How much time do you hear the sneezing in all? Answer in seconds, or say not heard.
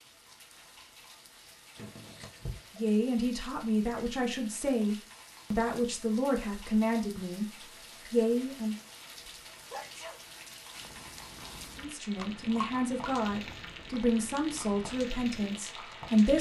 2 s.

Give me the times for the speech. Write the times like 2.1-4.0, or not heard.
2.8-7.5, 8.1-8.8, 11.8-16.3.